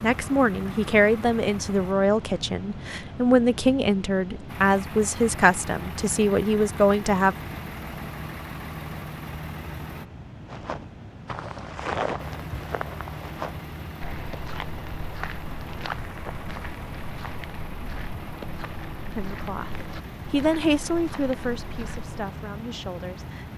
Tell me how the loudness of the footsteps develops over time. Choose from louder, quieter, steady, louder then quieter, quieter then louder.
quieter.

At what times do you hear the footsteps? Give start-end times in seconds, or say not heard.
10.4-22.2.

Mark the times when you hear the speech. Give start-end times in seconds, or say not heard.
0.0-7.3, 19.1-23.5.